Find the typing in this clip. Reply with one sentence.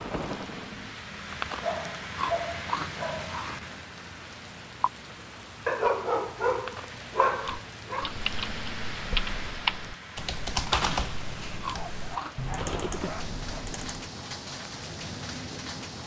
You can hear the typing from 7.5 to 14.1 s.